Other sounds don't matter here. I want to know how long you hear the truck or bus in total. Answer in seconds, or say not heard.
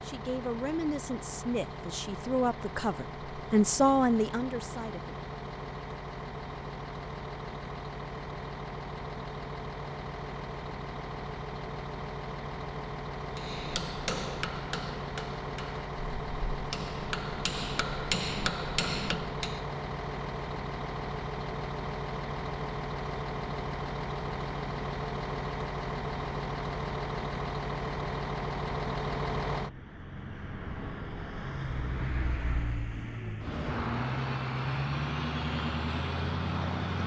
37 s.